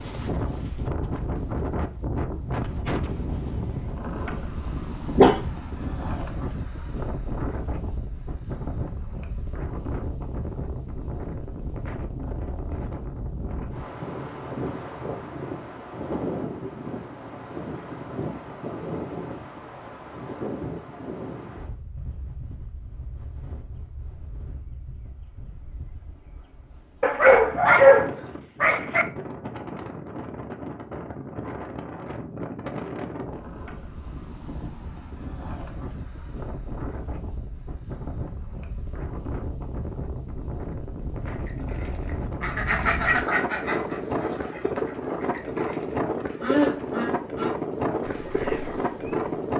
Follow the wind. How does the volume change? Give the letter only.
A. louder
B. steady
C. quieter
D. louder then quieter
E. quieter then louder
E.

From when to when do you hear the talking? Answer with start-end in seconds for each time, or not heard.
not heard.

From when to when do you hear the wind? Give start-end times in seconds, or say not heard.
0.0-49.5.